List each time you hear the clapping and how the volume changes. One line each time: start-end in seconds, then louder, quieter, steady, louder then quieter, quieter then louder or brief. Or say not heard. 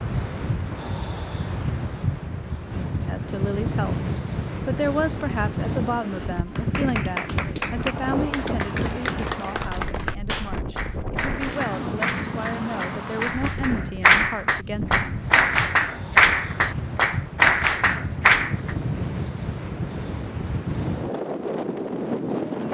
6.5-18.8 louder.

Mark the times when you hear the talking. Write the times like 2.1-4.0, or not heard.
3.0-4.0, 4.7-15.2.